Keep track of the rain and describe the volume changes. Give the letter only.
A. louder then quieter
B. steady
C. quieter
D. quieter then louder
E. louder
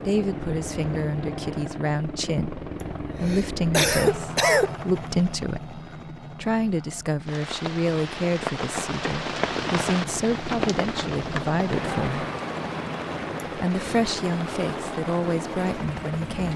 C.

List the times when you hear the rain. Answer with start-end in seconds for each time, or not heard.
7.2-16.5.